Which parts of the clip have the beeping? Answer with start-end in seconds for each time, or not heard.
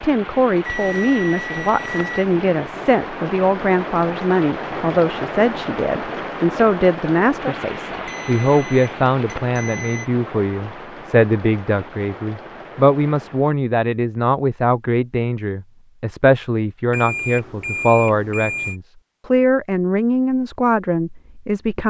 0.7-2.2, 8.1-10.1, 16.9-18.8.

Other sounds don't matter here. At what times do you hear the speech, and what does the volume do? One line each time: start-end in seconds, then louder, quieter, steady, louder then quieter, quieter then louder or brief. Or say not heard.
0.0-21.8 steady.